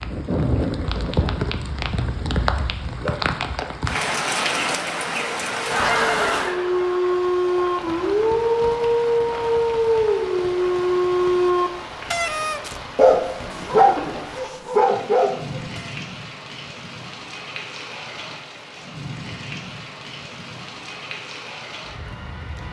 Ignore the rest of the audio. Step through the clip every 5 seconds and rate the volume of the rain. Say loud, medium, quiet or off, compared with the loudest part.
loud, loud, medium, medium, medium.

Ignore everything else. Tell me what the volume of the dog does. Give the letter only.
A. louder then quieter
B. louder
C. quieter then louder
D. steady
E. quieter
D.